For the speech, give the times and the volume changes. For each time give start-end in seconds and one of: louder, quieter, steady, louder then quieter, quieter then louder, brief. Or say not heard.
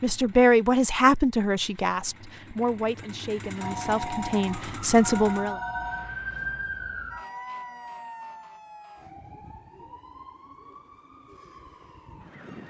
0.0-5.5 quieter then louder.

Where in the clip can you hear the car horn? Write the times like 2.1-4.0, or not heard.
not heard.